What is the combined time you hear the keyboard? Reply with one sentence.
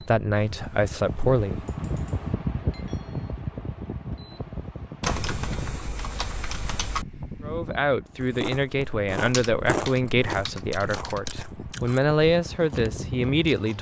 You can hear the keyboard for 6 seconds altogether.